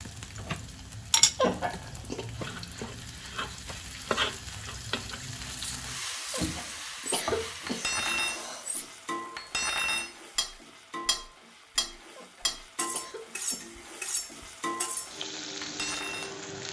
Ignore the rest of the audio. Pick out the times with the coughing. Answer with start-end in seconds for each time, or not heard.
1.4-2.2, 6.3-8.9, 12.2-13.7.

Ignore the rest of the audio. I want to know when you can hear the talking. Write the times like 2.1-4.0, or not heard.
not heard.